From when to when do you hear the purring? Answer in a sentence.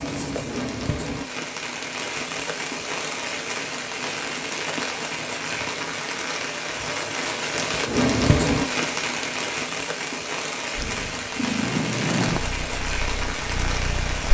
You can hear the purring from 10.8 to 14.2 s.